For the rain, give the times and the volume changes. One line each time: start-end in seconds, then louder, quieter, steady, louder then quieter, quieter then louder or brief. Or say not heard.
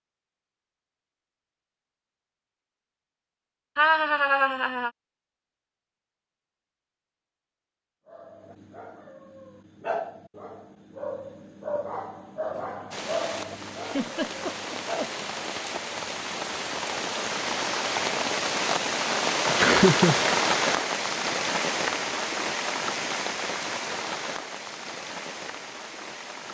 12.9-26.5 louder then quieter.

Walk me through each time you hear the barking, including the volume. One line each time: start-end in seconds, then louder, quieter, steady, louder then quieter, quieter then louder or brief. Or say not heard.
8.1-15.2 louder then quieter.